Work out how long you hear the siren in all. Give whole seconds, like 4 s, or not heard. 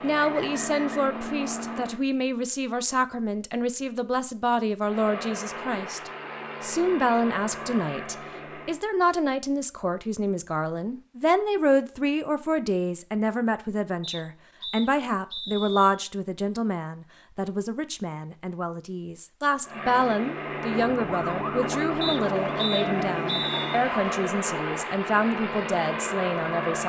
3 s.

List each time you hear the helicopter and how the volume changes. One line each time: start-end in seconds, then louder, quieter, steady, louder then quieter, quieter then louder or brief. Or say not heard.
0.0-2.0 brief
4.8-8.8 steady
19.6-26.8 steady.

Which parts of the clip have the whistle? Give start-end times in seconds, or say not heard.
0.1-1.1, 14.0-15.9, 22.0-23.8.